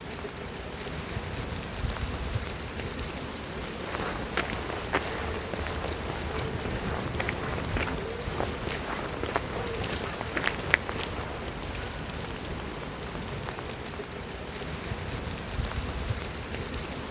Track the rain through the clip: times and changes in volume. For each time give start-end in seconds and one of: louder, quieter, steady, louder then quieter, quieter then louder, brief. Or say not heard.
0.0-17.0 steady.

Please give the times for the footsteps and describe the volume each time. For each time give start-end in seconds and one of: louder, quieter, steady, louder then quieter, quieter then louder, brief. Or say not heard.
3.8-11.4 steady.